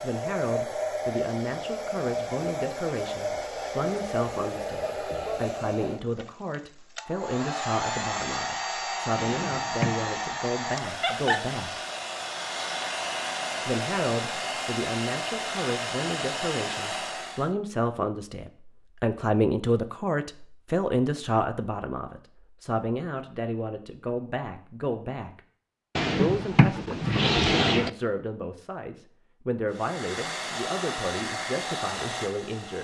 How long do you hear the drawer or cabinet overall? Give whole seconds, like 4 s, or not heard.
3 s.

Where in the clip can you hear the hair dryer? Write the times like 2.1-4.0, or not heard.
0.0-17.5, 29.7-32.8.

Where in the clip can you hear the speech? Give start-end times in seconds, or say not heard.
0.0-11.8, 13.7-25.4, 26.1-32.8.